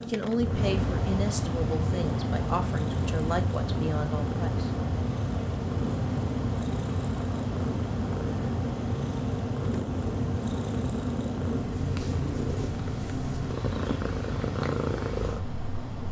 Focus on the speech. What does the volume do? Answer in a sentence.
The volume of the speech stays about the same.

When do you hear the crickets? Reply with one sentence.
You can't hear the crickets here.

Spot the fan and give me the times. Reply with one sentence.
The fan can be heard from 0.0 to 16.0 s.